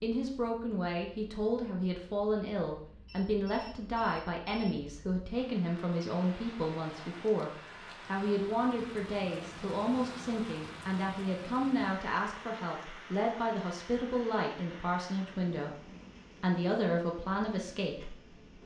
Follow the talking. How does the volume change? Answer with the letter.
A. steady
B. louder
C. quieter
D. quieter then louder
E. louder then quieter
A.